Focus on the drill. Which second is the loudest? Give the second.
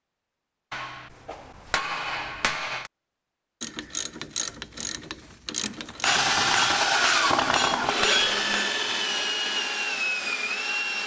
7 s.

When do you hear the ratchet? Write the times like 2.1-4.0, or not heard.
3.6-6.2.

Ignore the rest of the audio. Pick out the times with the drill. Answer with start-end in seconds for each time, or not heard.
5.6-11.0.